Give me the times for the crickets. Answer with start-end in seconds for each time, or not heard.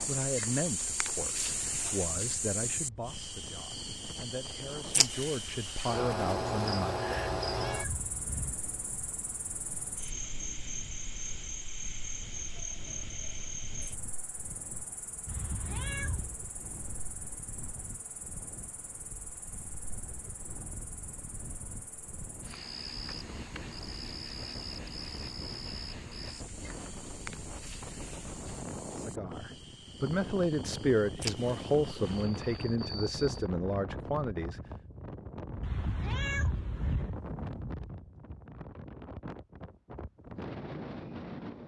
0.0-33.5.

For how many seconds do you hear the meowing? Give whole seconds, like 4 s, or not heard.
4 s.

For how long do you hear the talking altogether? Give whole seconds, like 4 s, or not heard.
13 s.